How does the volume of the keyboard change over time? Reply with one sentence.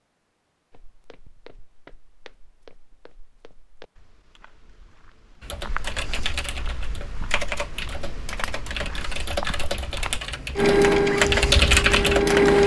The volume of the keyboard goes up.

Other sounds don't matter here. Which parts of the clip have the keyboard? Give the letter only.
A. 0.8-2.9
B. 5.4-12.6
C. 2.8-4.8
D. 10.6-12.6
B.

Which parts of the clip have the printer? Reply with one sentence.
You can hear the printer from 10.6 to 12.6 s.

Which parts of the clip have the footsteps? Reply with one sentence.
The footsteps can be heard from 0.7 to 10.2 s.